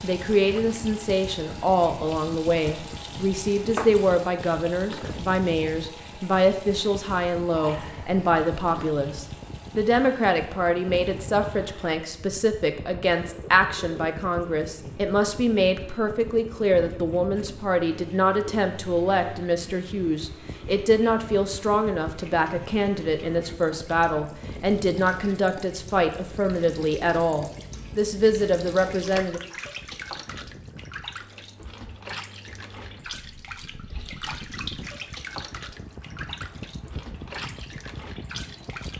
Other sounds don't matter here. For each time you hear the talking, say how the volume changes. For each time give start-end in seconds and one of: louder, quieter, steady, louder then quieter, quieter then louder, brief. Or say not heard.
0.0-29.4 steady.